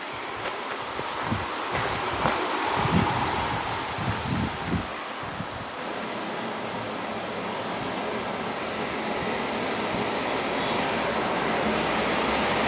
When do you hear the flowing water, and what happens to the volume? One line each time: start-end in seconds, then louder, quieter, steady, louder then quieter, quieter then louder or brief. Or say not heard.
5.8-12.6 louder.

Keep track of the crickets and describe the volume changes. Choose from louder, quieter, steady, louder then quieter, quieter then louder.
quieter.